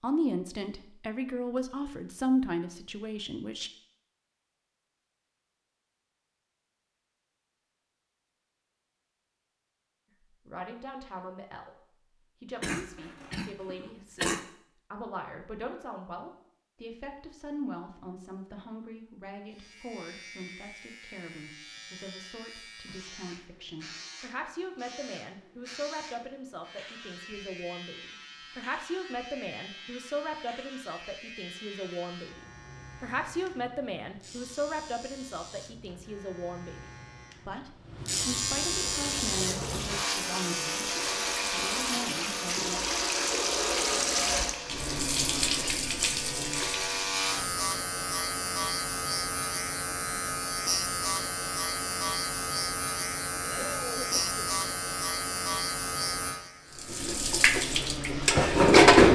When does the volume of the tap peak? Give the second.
59 s.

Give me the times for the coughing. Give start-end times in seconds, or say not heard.
12.6-14.4, 53.4-54.5.